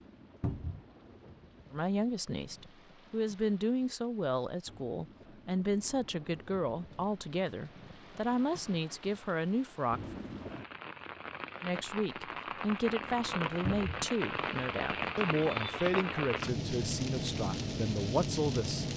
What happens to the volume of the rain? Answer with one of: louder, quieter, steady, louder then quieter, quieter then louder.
louder.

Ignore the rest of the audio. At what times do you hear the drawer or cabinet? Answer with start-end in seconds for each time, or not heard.
0.4-0.8, 13.7-14.1.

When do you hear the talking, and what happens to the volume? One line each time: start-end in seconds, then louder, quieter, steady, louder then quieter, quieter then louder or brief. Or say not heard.
1.7-10.2 steady
11.6-18.9 steady.